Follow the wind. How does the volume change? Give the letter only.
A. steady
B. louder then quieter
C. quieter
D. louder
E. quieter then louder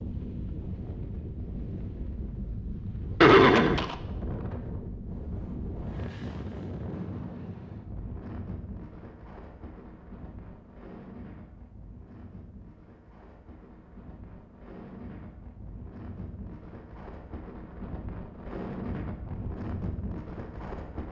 E.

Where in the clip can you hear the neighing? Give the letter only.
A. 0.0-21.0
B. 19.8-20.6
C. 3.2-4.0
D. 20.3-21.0
C.